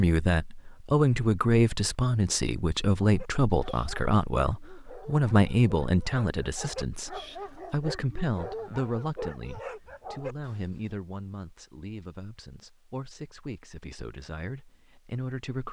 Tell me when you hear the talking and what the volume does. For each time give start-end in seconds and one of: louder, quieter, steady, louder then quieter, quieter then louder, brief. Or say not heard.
0.0-15.6 quieter.